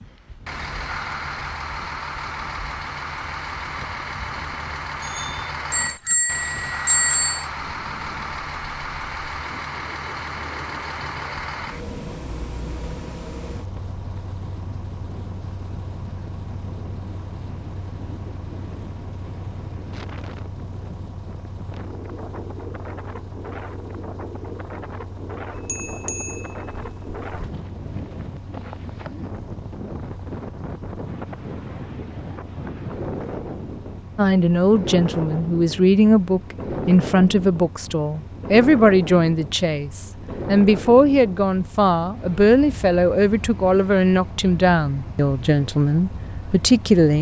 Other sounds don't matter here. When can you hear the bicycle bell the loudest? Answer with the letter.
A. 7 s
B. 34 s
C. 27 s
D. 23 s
A.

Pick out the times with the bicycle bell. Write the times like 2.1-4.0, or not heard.
5.0-7.5, 25.6-27.5.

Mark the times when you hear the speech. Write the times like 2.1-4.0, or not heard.
34.1-47.1.